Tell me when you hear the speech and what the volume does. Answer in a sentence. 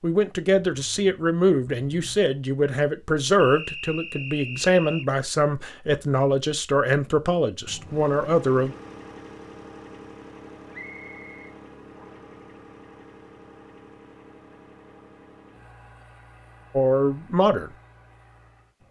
You can hear the speech from 0.0 to 8.8 s, at a steady volume; and briefly from 16.8 to 17.7 s.